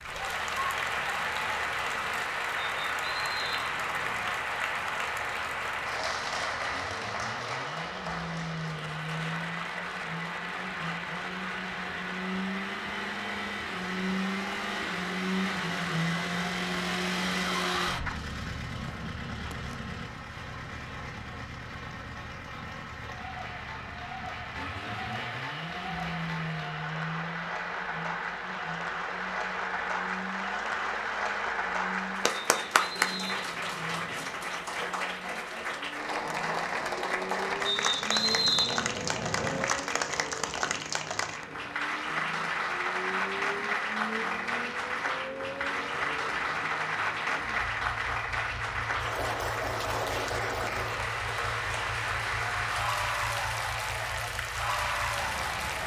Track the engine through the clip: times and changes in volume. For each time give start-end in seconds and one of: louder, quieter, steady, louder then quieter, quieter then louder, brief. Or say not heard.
0.0-55.8 louder then quieter.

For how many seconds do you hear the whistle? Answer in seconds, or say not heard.
6 s.